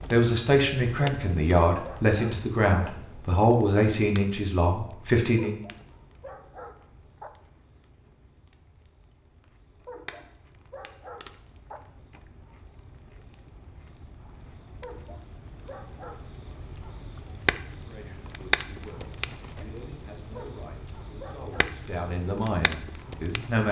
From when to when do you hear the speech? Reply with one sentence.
The speech can be heard from 0.0 to 5.5 s and from 17.9 to 23.6 s.